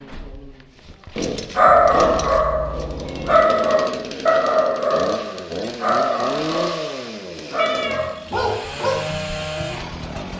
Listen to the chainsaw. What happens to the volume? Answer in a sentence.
The loudness of the chainsaw stays about the same.